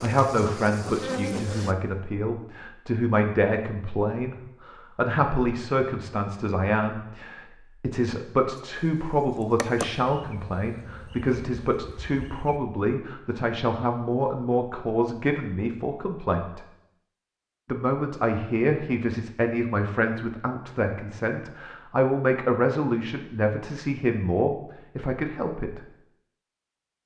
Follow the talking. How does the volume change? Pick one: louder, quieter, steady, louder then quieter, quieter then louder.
steady.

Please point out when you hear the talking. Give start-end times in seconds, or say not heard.
0.0-16.6, 17.6-25.8.